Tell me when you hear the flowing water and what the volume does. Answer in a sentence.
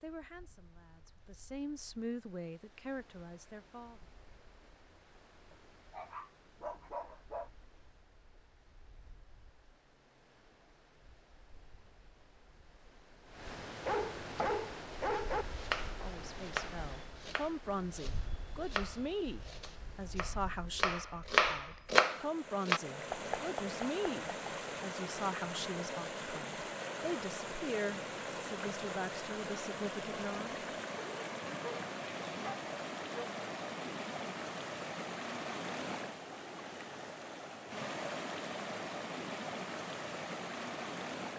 The flowing water can be heard from 0.0 to 41.3 s, getting louder.